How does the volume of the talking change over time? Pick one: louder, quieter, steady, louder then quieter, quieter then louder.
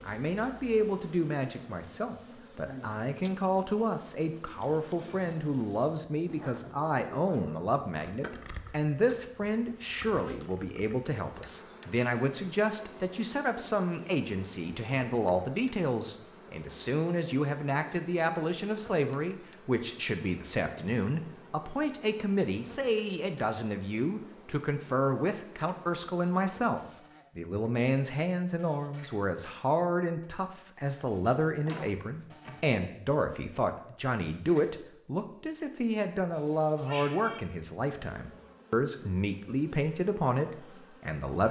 steady.